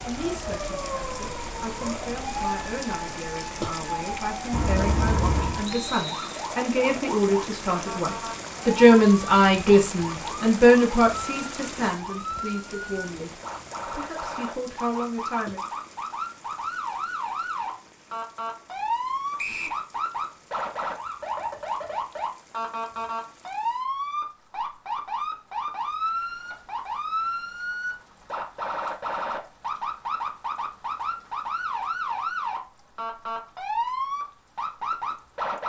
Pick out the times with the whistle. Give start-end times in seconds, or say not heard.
5.7-6.5, 19.4-19.8.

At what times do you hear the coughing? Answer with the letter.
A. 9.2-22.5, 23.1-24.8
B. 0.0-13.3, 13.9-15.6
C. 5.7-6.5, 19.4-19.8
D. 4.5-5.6
D.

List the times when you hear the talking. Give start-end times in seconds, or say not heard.
0.0-13.3, 13.9-15.6.